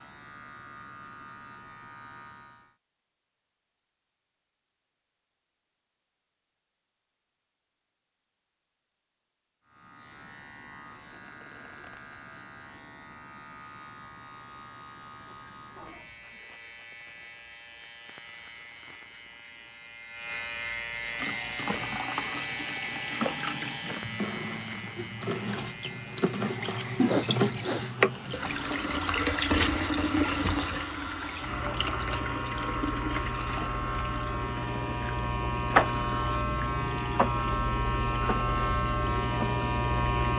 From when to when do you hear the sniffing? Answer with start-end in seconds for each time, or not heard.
15.2-16.3, 27.1-27.9.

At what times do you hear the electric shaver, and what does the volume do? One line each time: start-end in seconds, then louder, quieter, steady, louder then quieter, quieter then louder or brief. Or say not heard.
0.0-2.8 brief
9.7-40.3 louder.